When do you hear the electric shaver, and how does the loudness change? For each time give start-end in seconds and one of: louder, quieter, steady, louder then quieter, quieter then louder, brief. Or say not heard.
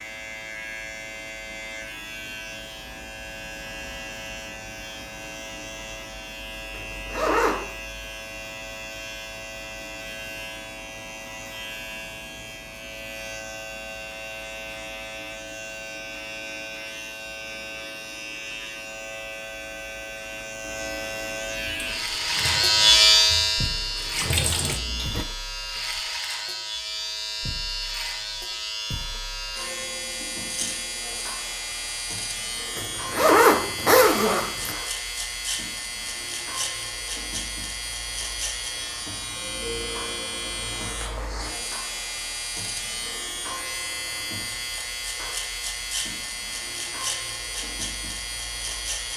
0.0-49.1 louder then quieter.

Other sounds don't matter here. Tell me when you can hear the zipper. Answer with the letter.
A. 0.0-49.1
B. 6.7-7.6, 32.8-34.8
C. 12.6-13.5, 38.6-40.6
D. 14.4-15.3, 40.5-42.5
B.